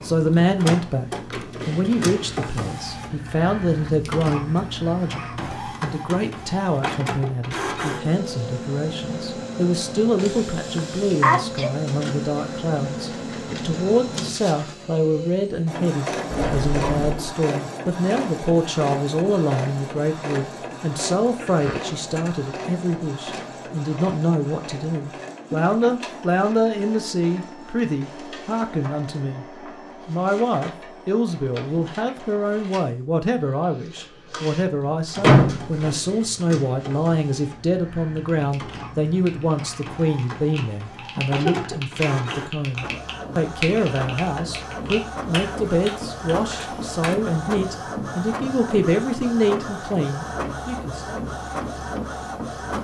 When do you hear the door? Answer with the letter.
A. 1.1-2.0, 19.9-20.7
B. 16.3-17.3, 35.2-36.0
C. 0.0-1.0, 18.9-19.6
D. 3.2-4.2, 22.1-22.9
B.